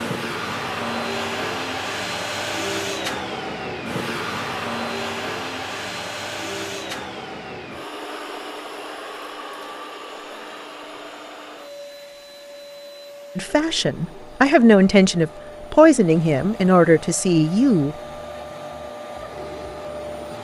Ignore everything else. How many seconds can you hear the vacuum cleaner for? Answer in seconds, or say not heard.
20 s.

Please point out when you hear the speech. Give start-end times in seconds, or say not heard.
13.3-17.9.